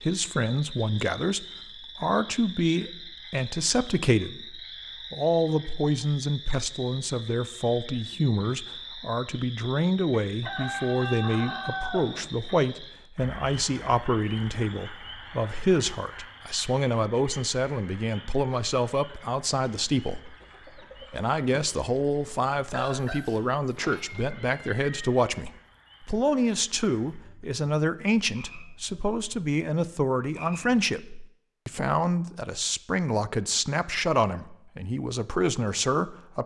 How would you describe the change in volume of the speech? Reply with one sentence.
The volume of the speech stays about the same.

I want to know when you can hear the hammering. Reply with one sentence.
You can't hear the hammering here.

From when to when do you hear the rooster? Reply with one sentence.
You can hear the rooster from 10.4 to 12.3 s and from 20.2 to 23.2 s.